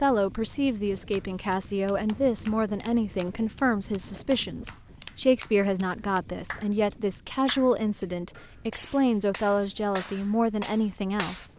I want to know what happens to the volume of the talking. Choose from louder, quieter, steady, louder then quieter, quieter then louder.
steady.